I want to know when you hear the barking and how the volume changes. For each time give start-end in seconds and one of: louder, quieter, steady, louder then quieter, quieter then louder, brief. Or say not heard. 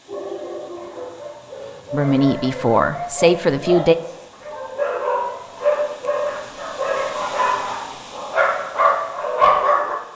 0.1-9.9 louder.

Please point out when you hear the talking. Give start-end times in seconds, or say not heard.
1.9-4.0.